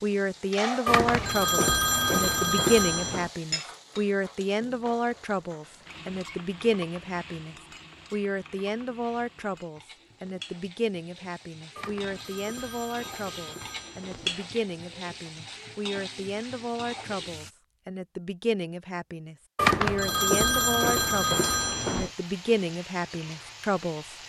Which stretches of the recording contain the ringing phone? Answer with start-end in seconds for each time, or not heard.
0.8-3.3, 11.8-14.4, 19.6-22.1.